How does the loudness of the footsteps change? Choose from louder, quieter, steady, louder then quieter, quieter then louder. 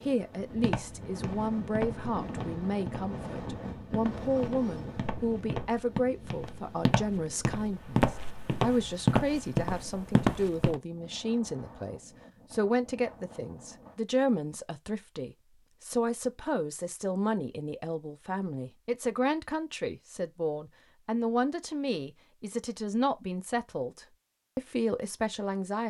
louder.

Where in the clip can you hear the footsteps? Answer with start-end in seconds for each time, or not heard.
0.4-10.8.